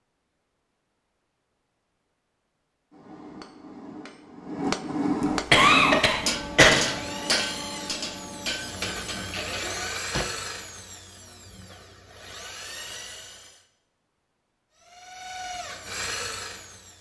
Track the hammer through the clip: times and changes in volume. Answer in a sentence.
You can hear the hammer from 2.9 to 10.3 s, getting louder then quieter.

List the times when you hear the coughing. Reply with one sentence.
The coughing can be heard from 5.5 to 6.7 s.